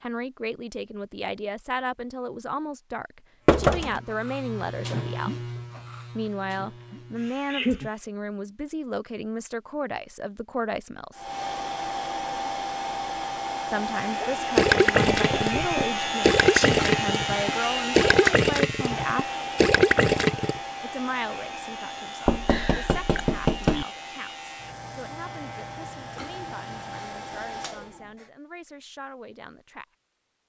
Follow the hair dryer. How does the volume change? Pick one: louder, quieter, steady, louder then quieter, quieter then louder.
quieter.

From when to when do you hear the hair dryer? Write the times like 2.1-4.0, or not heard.
11.2-28.3.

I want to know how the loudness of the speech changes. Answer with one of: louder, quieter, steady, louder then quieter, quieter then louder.
quieter.